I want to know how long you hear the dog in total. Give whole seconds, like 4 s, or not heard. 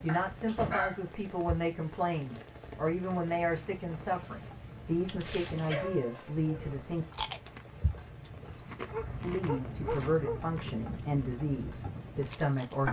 4 s.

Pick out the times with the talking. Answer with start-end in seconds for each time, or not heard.
0.0-7.0, 9.2-12.8.